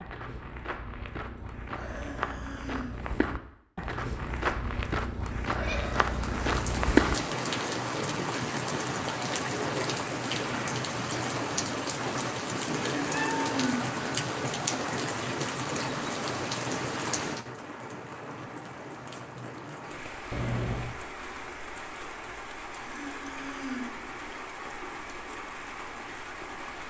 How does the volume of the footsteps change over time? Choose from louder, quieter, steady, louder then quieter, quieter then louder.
louder.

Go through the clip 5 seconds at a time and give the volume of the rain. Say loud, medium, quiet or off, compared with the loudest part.
off, loud, loud, loud, medium, medium.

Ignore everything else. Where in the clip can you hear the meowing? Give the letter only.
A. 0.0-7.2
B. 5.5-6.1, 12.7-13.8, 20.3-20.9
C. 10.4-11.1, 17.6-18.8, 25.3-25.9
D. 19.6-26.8
B.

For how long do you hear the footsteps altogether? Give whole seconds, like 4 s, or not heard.
7 s.